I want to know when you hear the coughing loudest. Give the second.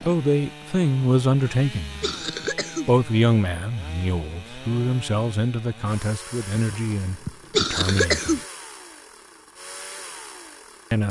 8 s.